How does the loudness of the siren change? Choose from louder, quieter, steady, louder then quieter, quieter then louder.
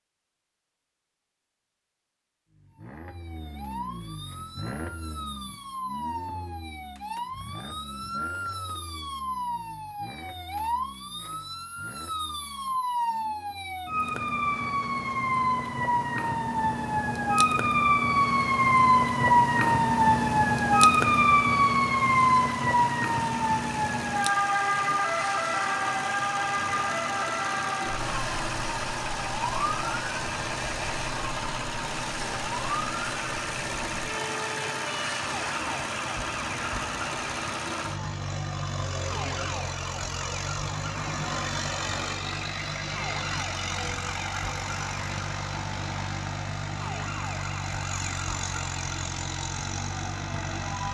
louder then quieter.